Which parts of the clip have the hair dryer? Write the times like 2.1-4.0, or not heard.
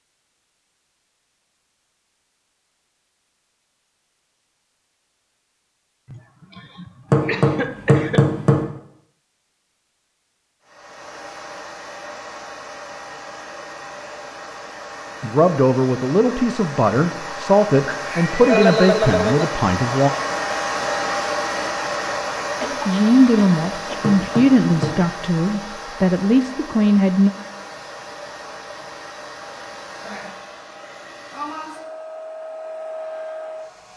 10.6-33.9.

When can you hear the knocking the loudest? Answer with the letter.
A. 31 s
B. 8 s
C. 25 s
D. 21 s
B.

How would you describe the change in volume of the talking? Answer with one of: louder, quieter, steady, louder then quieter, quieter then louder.
steady.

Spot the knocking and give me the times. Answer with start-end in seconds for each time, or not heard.
7.1-8.7, 24.0-24.9.